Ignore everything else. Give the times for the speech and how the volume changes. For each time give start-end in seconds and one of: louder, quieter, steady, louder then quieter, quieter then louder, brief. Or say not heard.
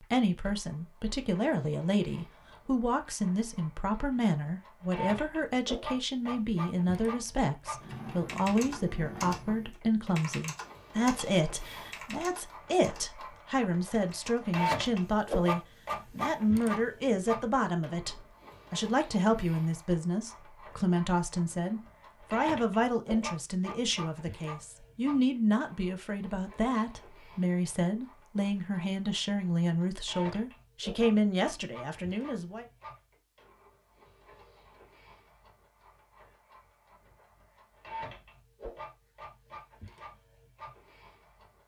0.0-32.6 steady.